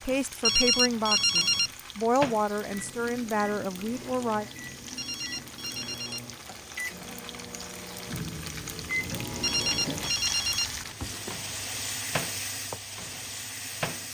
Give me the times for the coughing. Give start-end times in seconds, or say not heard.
not heard.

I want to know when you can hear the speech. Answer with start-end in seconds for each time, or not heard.
0.0-4.5.